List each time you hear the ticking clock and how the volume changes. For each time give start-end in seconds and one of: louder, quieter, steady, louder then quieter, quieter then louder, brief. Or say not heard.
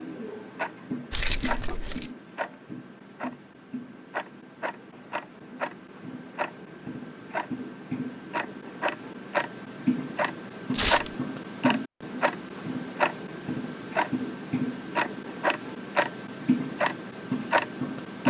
0.0-18.2 louder.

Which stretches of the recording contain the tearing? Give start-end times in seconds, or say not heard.
10.7-11.1.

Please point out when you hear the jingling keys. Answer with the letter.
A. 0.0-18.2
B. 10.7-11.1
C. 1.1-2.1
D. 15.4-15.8
C.